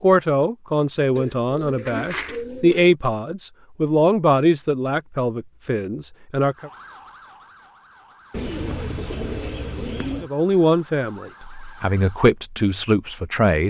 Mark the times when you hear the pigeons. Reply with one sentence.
The pigeons can be heard from 1.1 to 3.0 s and from 8.3 to 10.3 s.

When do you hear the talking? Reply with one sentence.
The talking can be heard from 0.0 to 6.7 s and from 10.2 to 13.6 s.